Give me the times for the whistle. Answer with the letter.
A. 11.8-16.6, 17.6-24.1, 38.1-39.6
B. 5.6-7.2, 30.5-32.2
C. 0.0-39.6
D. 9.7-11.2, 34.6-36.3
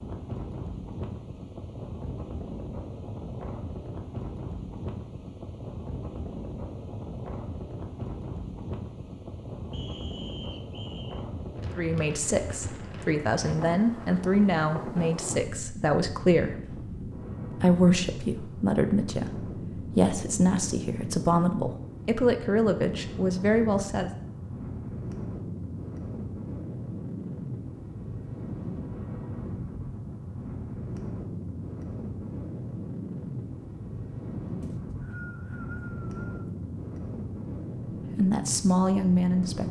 D.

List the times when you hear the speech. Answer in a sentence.
You can hear the speech from 11.8 to 16.6 s, from 17.6 to 24.1 s and from 38.1 to 39.6 s.